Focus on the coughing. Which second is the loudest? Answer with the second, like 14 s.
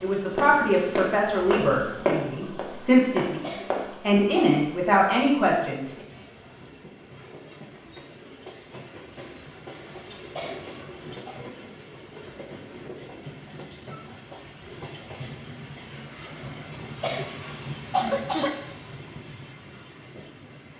18 s.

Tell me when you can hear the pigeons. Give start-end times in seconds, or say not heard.
not heard.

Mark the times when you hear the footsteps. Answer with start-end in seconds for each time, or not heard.
0.3-4.0.